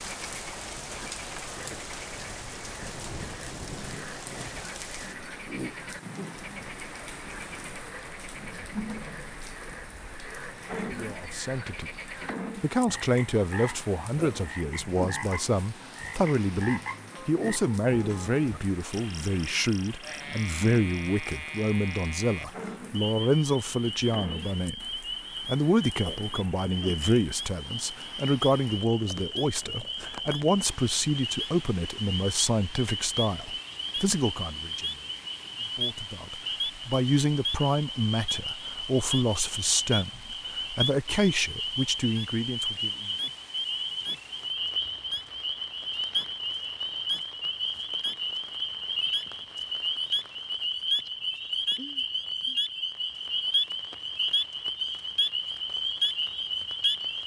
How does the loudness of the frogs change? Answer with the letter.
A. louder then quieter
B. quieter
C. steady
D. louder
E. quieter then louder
D.